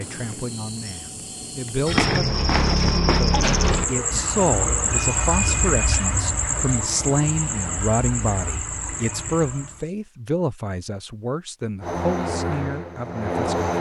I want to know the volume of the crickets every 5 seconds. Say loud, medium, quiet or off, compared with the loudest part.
loud, loud, off.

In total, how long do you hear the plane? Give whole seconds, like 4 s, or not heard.
2 s.